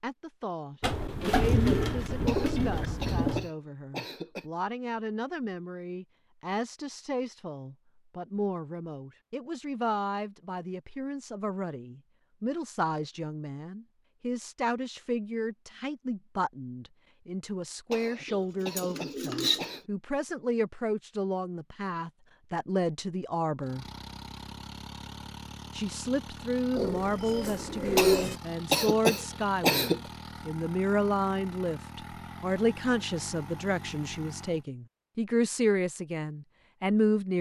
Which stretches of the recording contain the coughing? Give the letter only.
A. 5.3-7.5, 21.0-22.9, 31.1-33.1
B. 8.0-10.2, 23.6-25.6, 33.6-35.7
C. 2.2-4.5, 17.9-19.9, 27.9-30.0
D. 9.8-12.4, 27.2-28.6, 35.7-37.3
C.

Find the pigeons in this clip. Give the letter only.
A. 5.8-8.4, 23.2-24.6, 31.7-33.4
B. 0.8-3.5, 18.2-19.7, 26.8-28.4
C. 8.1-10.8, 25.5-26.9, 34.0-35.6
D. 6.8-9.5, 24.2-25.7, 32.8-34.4
B.